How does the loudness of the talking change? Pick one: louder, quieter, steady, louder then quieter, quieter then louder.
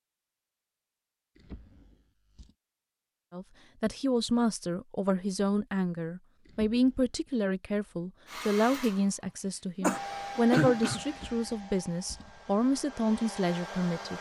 steady.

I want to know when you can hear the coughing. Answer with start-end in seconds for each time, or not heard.
9.8-11.2.